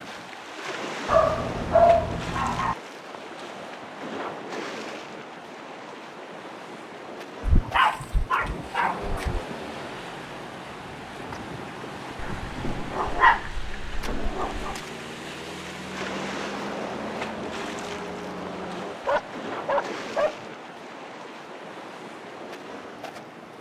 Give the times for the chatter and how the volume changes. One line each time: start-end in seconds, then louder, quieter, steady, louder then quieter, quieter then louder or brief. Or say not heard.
not heard.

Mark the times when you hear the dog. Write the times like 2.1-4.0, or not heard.
1.1-2.8, 7.5-9.4, 12.2-14.8, 19.1-20.4.